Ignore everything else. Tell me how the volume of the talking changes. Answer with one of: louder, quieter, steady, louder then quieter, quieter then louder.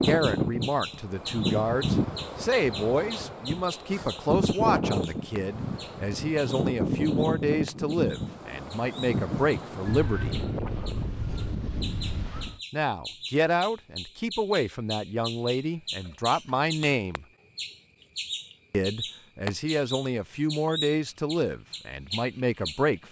steady.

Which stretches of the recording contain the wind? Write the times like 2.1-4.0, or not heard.
0.0-12.6.